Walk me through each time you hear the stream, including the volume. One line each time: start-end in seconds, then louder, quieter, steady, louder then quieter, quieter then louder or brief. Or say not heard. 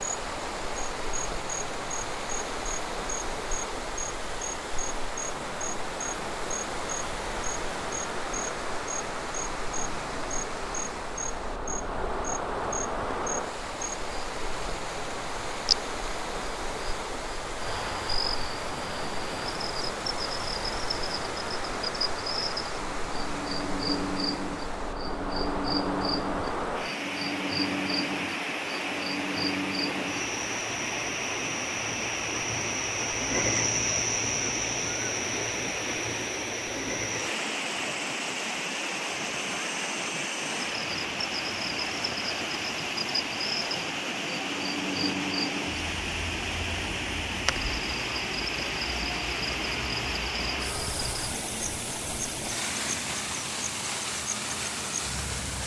0.0-55.6 steady.